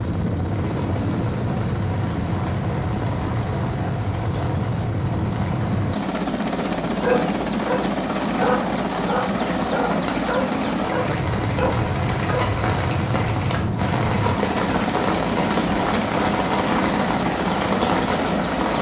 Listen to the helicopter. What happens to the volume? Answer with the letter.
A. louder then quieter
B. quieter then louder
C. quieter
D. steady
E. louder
D.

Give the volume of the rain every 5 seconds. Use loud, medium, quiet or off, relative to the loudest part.
quiet, medium, loud, loud.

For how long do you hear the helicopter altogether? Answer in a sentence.
The helicopter can be heard for 19 seconds in total.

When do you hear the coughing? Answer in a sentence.
The coughing can't be heard in this clip.